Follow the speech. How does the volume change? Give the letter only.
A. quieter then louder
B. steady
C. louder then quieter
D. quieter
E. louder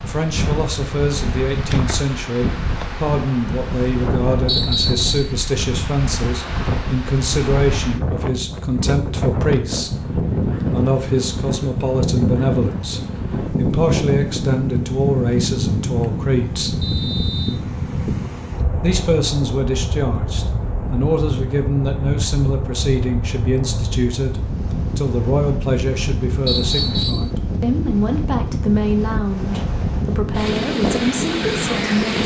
B.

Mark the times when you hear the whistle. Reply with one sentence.
You can hear the whistle from 4.5 to 5.3 s, from 16.8 to 17.6 s and from 26.4 to 27.3 s.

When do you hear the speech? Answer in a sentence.
The speech can be heard from 0.0 to 9.9 s, from 10.7 to 16.8 s and from 18.8 to 32.2 s.